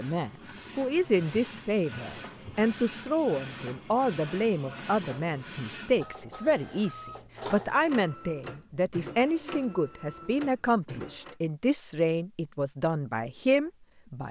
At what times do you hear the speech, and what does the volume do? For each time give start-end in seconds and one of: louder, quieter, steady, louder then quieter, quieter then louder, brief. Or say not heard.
0.0-14.2 steady.